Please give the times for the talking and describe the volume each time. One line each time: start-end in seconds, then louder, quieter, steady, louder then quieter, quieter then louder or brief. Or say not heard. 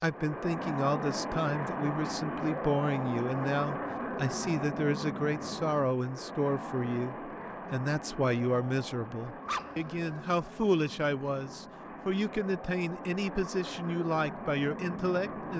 0.0-15.5 steady.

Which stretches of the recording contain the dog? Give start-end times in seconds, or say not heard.
9.4-10.2.